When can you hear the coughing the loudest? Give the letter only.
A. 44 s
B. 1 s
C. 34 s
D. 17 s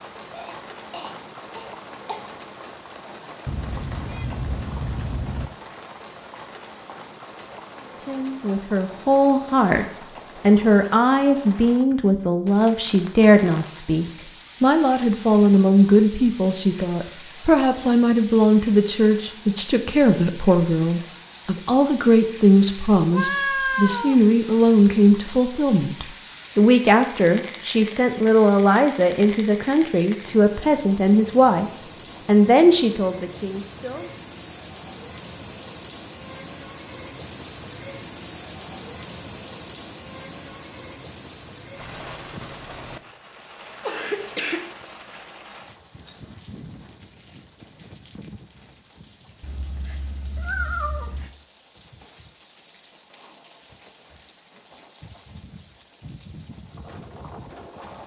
A.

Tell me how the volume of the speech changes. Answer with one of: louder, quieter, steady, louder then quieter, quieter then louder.
steady.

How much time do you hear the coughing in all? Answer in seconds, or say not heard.
3 s.